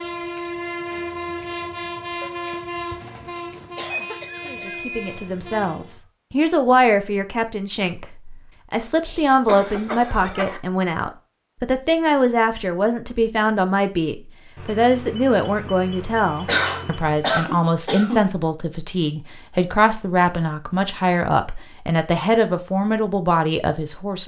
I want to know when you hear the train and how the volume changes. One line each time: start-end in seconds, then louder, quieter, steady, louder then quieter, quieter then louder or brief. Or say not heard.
0.0-6.1 quieter.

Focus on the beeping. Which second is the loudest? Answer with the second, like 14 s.
5 s.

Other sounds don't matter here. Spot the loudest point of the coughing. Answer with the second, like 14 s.
17 s.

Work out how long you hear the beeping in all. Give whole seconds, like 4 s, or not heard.
4 s.